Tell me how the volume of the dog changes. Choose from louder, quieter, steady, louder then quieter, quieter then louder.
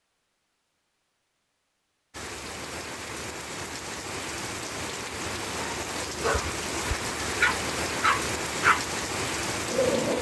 louder then quieter.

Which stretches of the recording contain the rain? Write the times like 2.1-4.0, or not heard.
2.1-10.1.